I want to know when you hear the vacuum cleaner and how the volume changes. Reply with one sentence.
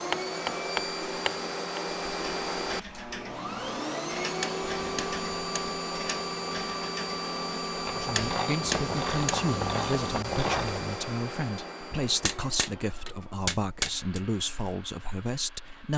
You can hear the vacuum cleaner from 0.0 to 15.9 s, getting quieter.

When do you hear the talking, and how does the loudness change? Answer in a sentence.
The talking can be heard from 8.0 to 15.9 s, at a steady volume.